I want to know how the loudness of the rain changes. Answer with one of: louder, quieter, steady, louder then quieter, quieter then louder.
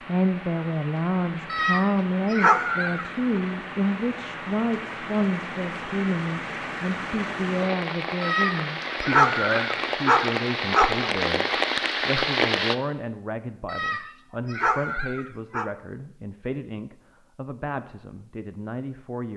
louder.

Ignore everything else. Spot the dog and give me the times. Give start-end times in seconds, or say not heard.
1.5-3.4, 8.2-11.1, 13.7-15.7.